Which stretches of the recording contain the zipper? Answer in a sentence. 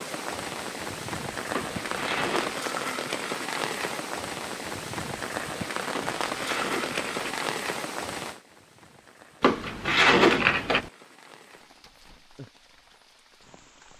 You can't hear the zipper here.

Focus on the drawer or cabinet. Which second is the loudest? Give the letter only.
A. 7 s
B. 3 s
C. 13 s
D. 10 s
D.